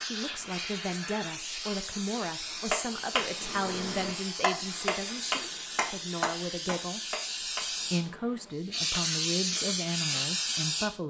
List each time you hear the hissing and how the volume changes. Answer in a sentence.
You can hear the hissing from 0.0 to 10.9 s, getting louder.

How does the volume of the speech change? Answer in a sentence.
The loudness of the speech stays about the same.